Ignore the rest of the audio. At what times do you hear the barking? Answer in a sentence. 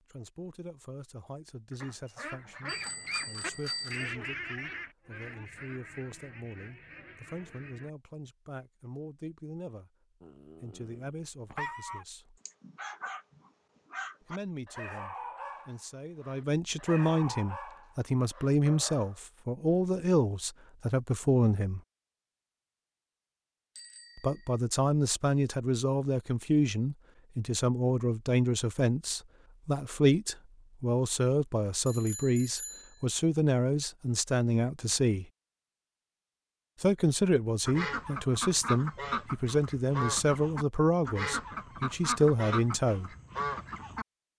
You can hear the barking from 10.2 to 19.2 s.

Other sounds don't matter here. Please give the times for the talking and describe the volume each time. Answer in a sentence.
The talking can be heard from 0.1 to 9.9 s, at a steady volume; briefly from 10.6 to 12.4 s; from 14.2 to 21.8 s, getting louder; from 24.1 to 35.2 s, at a steady volume; and from 36.8 to 43.1 s, at a steady volume.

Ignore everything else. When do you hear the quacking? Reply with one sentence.
The quacking can be heard from 1.7 to 8.3 s and from 37.6 to 44.0 s.